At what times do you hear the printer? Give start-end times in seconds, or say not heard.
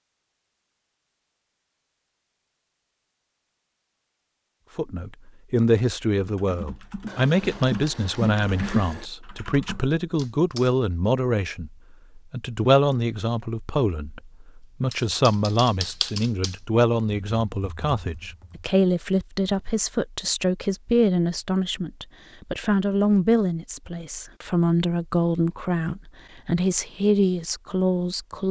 not heard.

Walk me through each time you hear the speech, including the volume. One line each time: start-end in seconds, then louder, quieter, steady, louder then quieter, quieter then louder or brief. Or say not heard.
4.8-28.4 steady.